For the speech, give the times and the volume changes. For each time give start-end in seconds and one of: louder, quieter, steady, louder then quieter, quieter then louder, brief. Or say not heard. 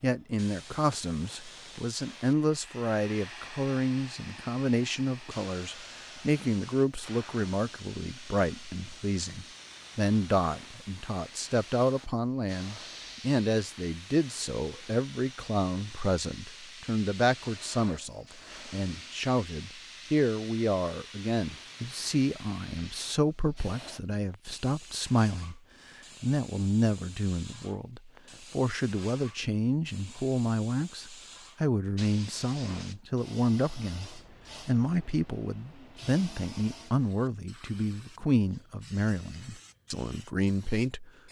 0.0-41.1 steady.